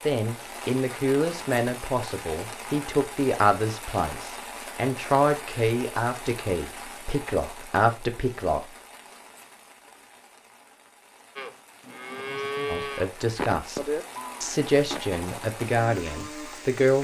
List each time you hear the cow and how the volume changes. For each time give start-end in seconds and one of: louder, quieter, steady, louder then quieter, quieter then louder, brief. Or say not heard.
11.3-16.8 quieter.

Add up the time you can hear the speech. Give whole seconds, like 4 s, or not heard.
12 s.